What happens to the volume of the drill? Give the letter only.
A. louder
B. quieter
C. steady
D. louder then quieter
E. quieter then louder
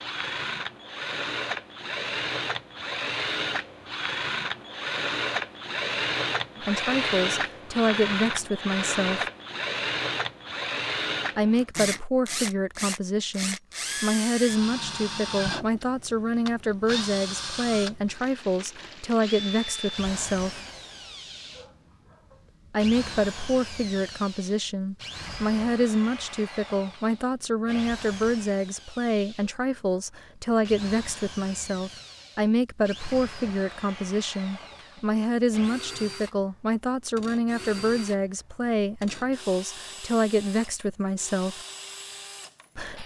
B.